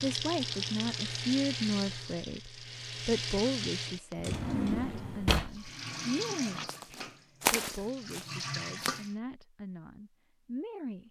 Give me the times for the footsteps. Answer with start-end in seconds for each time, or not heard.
6.7-9.1.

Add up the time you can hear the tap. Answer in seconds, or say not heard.
8 s.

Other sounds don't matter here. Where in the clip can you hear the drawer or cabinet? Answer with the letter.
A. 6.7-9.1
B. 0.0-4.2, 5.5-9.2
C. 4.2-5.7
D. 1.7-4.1
C.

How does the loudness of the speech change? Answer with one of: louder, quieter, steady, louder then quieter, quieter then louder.
quieter.